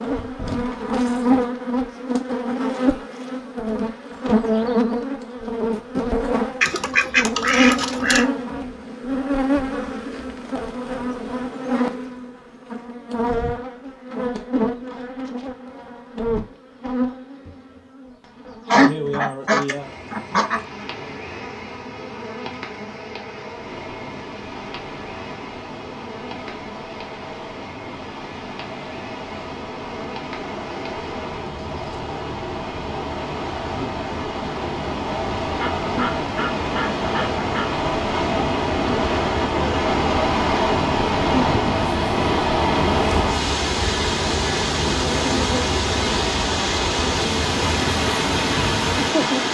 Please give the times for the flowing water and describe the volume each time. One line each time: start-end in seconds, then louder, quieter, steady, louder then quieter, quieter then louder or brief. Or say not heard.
23.4-49.4 louder.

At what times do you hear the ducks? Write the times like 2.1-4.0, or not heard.
6.6-8.2, 18.7-20.6, 35.6-37.8.